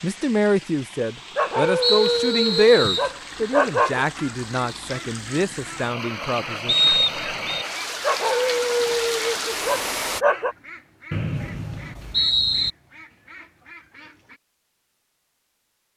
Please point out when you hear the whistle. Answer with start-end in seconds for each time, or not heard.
1.8-3.1, 6.7-7.7, 11.1-12.7.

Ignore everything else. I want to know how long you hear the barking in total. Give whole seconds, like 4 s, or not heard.
5 s.